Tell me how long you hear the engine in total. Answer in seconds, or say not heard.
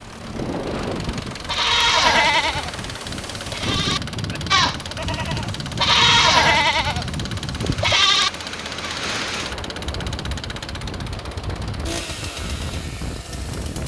14 s.